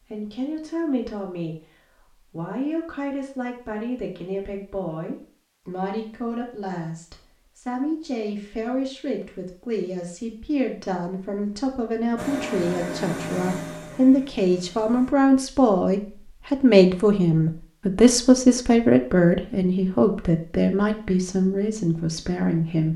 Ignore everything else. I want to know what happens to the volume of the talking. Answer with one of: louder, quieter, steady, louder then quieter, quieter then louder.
louder.